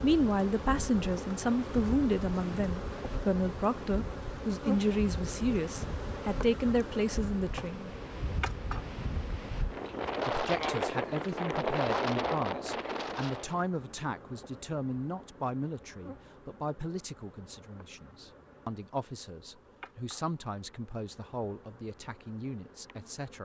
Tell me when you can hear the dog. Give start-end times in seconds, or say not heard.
not heard.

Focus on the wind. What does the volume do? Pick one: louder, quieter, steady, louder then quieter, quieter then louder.
louder.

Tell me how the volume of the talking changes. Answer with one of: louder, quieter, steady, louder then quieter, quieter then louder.
quieter.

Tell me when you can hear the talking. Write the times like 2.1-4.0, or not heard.
0.0-7.9, 10.2-23.3.